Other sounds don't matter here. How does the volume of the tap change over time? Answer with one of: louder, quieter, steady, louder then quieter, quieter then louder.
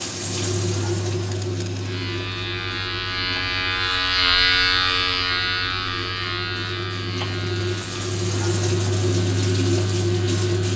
quieter then louder.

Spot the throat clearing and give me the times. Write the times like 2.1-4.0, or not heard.
not heard.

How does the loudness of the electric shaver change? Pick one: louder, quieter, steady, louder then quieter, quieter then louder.
louder then quieter.